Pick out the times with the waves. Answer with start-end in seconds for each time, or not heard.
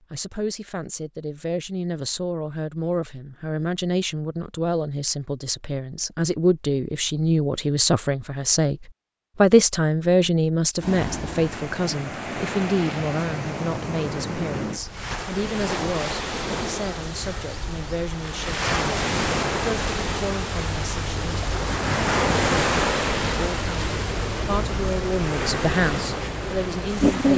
10.8-27.3.